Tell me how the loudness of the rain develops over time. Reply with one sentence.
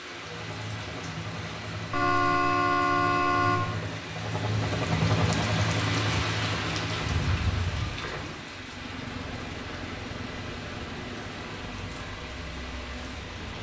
The volume of the rain goes up, then down.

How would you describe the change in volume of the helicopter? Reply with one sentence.
The volume of the helicopter goes up, then down.